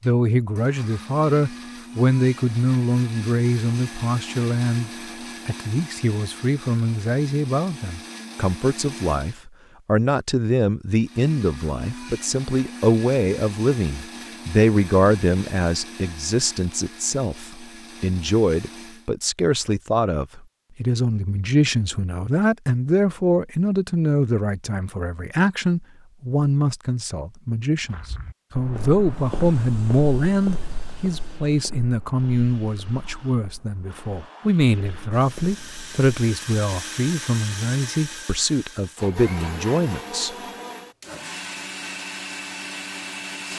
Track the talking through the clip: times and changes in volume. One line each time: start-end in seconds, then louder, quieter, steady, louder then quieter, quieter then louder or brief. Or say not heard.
0.0-40.4 steady.